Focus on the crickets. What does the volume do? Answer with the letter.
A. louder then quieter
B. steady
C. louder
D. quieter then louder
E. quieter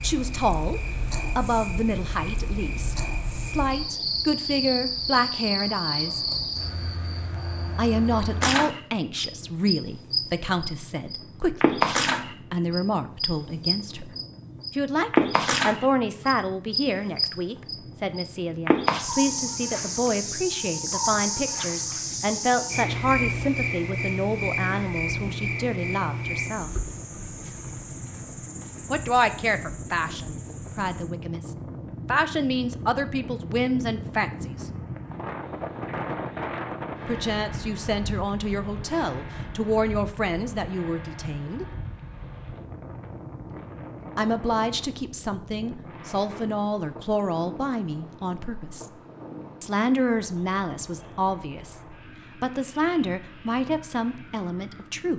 A.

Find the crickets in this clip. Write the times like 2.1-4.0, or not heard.
0.0-31.1.